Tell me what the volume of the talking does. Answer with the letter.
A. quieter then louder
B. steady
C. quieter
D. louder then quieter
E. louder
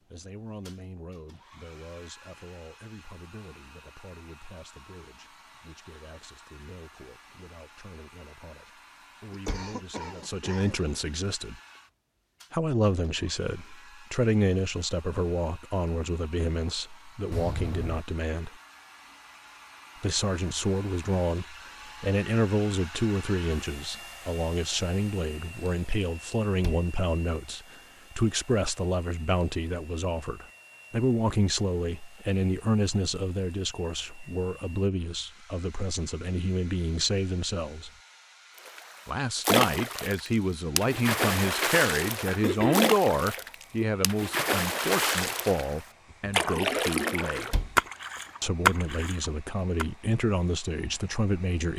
E.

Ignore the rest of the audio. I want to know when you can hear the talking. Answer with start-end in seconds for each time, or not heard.
0.1-11.6, 12.5-18.5, 20.0-37.9, 39.0-47.5, 48.4-51.7.